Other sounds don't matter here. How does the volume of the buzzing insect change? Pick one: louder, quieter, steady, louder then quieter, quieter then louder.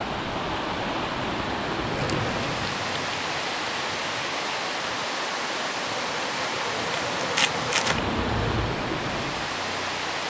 quieter then louder.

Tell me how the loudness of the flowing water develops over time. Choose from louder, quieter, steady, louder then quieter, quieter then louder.
steady.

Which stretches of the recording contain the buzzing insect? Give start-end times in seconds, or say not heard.
1.9-8.8.